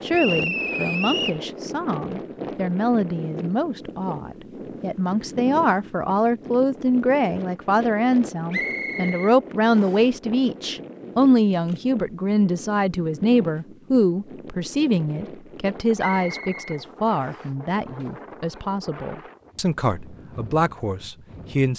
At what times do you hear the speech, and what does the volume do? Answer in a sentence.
You can hear the speech from 0.0 to 21.7 s, getting louder then quieter.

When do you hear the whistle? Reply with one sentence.
You can hear the whistle from 0.1 to 1.4 s, from 8.5 to 10.0 s and from 15.9 to 17.5 s.